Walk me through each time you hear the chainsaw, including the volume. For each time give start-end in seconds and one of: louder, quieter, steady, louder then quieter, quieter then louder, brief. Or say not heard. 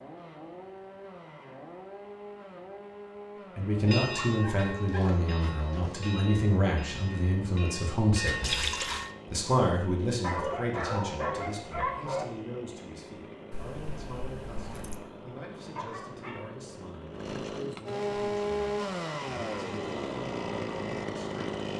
0.0-21.7 louder.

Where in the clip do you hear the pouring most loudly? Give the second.
9 s.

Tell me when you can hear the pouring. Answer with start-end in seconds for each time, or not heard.
8.4-9.1, 13.5-15.0.